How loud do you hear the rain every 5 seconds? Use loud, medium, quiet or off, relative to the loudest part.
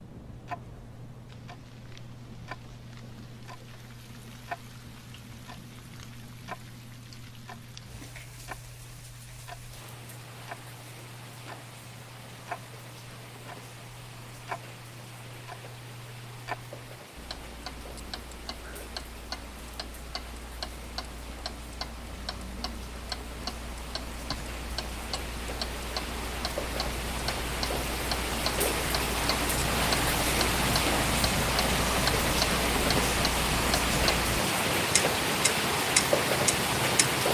quiet, quiet, quiet, quiet, quiet, medium, loud, loud.